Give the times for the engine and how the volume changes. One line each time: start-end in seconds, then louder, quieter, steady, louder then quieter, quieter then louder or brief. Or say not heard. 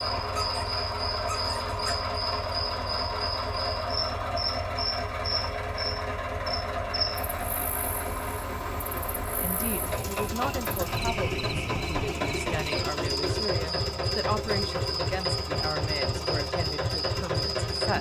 0.0-17.9 steady.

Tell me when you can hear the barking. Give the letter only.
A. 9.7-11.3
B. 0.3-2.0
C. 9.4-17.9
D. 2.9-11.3
B.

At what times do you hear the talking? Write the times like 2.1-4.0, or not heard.
9.4-17.9.